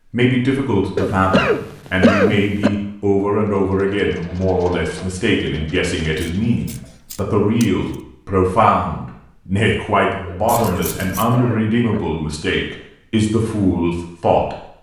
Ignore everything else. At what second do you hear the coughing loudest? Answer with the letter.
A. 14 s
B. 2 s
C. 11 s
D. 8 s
B.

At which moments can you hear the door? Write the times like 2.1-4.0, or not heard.
not heard.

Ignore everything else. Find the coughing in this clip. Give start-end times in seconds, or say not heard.
0.9-2.7, 10.2-12.0.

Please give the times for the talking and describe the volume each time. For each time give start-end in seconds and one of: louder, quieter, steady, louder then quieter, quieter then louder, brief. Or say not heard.
0.1-14.6 steady.